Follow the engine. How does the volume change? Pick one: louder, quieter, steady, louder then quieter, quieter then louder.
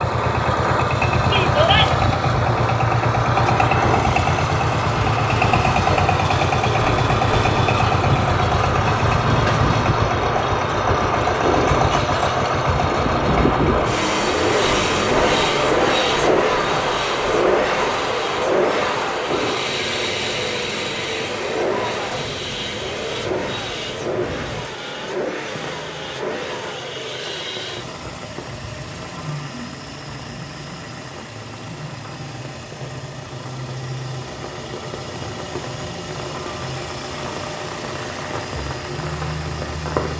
quieter.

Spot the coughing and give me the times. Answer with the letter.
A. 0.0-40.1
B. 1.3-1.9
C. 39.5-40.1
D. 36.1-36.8
B.